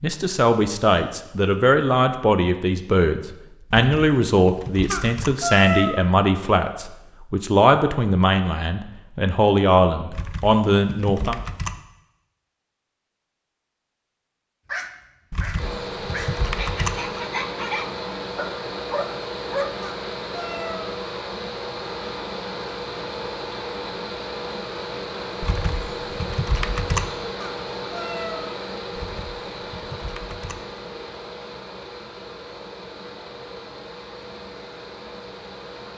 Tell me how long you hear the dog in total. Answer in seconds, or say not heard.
5 s.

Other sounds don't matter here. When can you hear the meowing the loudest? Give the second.
6 s.